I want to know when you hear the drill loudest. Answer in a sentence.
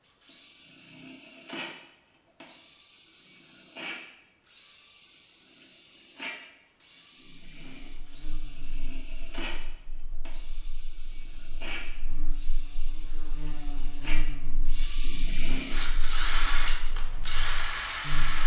The volume of the drill peaks at 18 seconds.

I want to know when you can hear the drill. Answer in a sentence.
You can hear the drill from 0.0 to 18.4 s.